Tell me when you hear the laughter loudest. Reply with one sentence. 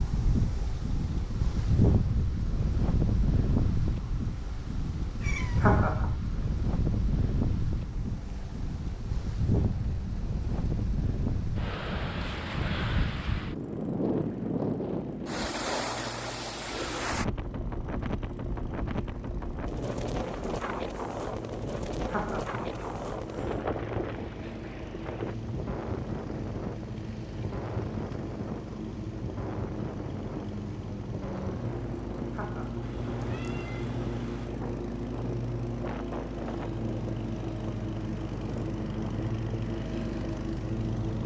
The loudest moment of the laughter is at 6 seconds.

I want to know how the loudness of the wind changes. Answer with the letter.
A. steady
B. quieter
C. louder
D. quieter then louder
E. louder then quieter
B.